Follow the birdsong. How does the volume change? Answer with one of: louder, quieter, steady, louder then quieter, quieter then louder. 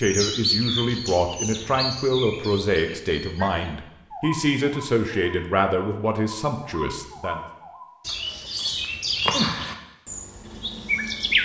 quieter then louder.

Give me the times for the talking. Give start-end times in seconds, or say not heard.
0.0-7.5.